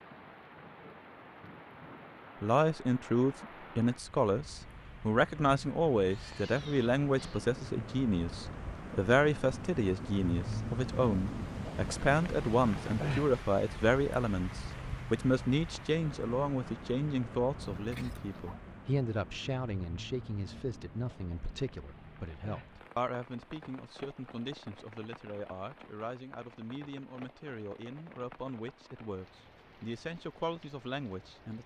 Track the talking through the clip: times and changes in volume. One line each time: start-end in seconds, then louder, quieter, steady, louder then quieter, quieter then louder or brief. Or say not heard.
2.4-31.6 quieter.